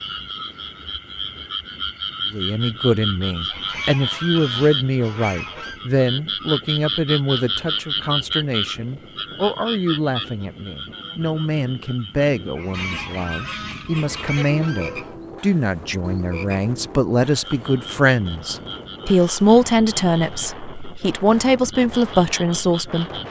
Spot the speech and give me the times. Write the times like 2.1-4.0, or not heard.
2.3-23.1.